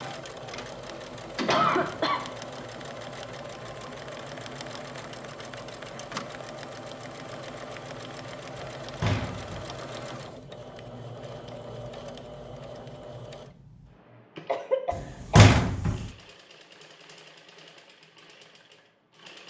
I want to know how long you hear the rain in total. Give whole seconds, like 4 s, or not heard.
not heard.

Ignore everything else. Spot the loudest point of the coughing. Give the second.
2 s.